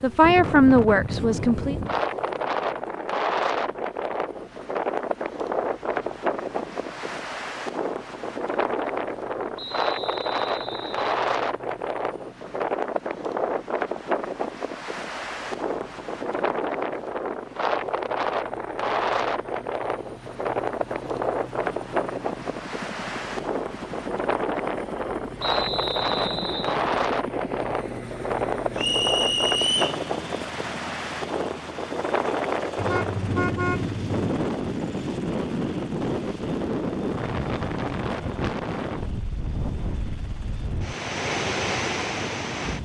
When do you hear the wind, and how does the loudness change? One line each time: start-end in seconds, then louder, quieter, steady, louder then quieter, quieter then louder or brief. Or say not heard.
0.0-42.8 steady.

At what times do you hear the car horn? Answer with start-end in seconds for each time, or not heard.
32.8-34.2.